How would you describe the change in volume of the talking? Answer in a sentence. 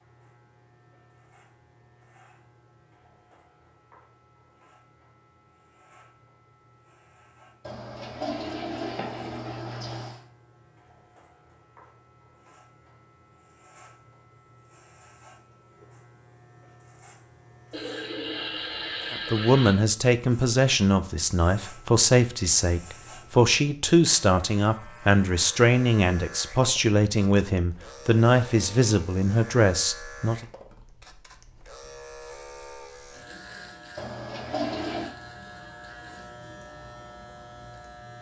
The loudness of the talking stays about the same.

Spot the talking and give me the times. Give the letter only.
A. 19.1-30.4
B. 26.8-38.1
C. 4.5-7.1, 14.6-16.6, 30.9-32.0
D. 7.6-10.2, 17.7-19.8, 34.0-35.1
A.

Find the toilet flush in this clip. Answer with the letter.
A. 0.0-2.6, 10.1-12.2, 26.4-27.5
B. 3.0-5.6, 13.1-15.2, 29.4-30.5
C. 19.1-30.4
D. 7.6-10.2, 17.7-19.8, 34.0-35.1
D.